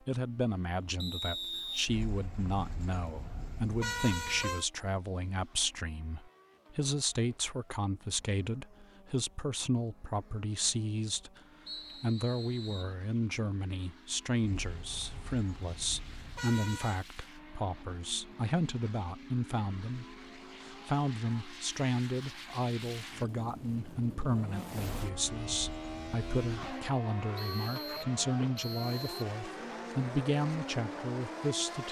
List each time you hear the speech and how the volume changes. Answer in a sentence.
The speech can be heard from 0.1 to 31.8 s, at a steady volume.